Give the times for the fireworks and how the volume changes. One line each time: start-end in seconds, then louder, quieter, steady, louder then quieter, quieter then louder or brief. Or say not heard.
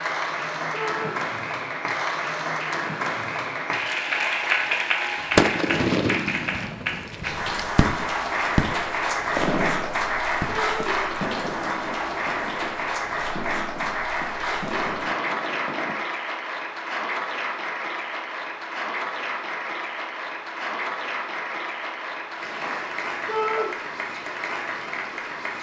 5.2-16.0 quieter.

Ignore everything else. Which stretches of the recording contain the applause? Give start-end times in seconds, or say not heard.
0.0-25.5.